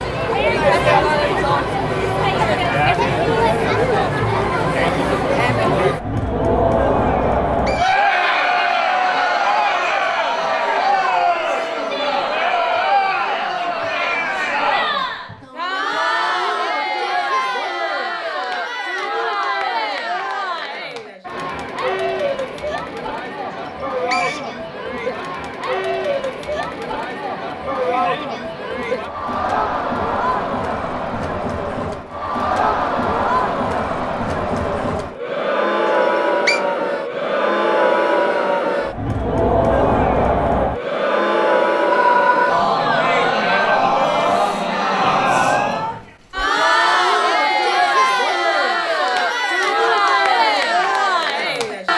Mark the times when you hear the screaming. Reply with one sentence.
You can hear the screaming from 41.9 to 42.6 s.